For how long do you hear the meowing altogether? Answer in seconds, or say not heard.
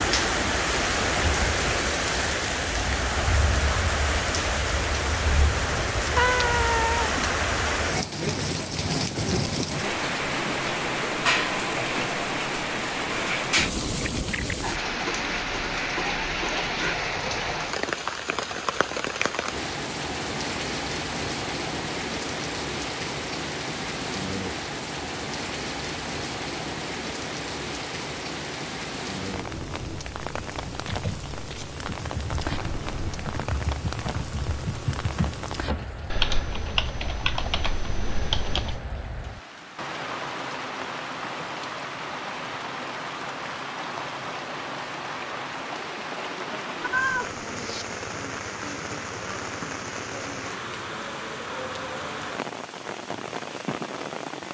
3 s.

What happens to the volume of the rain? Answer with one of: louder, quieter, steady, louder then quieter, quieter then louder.
quieter.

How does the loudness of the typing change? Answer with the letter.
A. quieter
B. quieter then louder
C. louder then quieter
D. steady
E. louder
E.